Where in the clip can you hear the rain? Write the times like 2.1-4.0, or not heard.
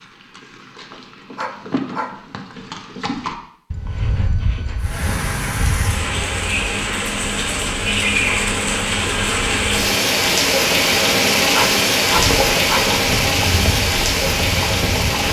4.8-15.2.